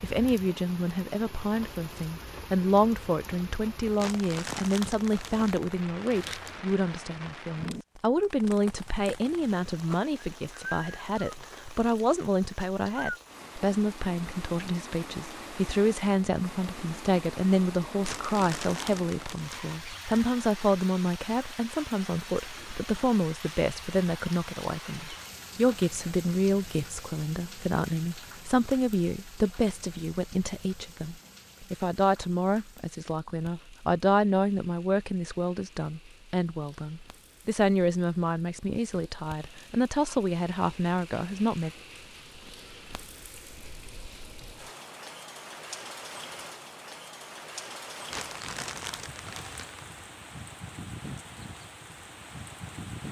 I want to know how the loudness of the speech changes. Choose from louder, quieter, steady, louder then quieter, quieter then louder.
steady.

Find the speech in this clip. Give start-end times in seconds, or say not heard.
0.0-41.7.